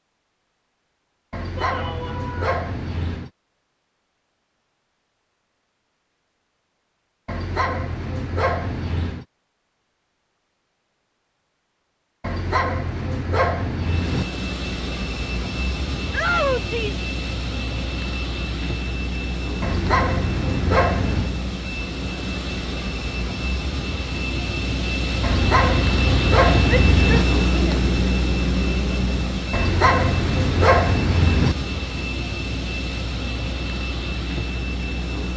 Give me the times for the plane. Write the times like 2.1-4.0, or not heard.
13.8-35.3.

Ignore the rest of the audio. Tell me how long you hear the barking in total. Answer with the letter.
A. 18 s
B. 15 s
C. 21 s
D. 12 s
D.